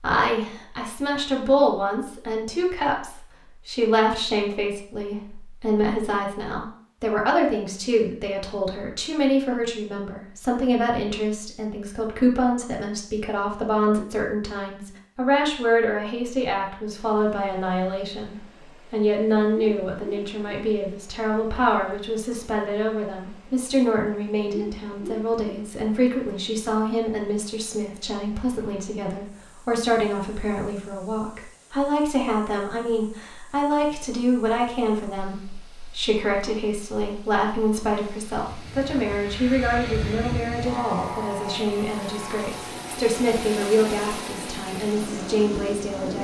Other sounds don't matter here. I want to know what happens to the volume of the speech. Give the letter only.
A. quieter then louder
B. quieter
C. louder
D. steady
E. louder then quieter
D.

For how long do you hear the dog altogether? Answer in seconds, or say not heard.
2 s.